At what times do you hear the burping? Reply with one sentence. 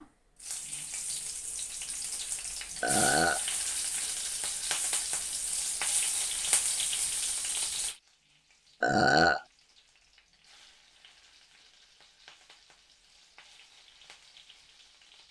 You can hear the burping from 2.8 to 3.5 s and from 8.8 to 9.4 s.